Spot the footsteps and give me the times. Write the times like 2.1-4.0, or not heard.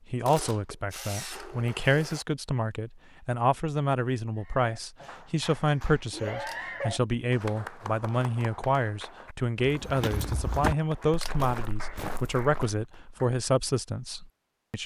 9.6-13.3.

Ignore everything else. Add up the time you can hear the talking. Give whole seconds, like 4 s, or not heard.
15 s.